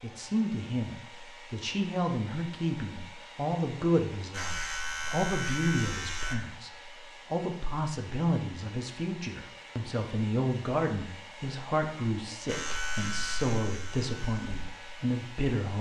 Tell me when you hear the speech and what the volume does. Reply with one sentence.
You can hear the speech from 0.0 to 15.7 s, at a steady volume.